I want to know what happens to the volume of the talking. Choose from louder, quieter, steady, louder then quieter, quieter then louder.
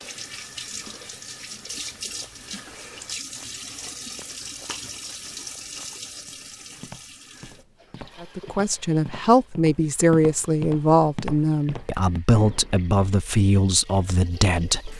steady.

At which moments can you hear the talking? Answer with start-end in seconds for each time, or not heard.
8.2-14.9.